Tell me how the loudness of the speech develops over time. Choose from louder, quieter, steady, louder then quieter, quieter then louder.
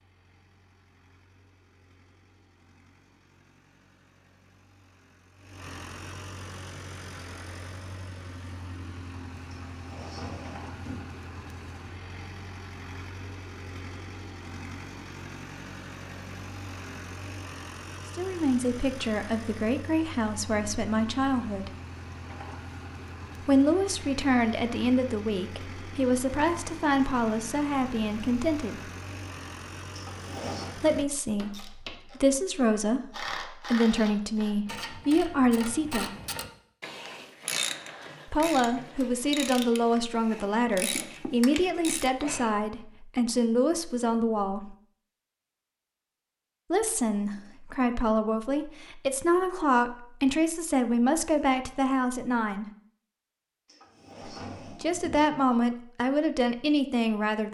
steady.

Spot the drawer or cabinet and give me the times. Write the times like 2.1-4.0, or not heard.
9.7-11.2, 29.9-30.8, 53.6-55.2.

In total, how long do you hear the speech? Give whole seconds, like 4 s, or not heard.
30 s.